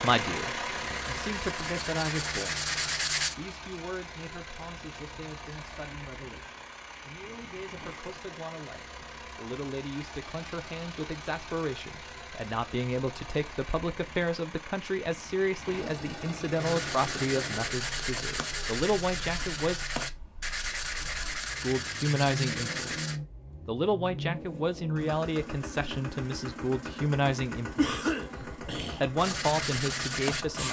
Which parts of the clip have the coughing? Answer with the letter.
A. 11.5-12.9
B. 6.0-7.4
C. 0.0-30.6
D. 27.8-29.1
D.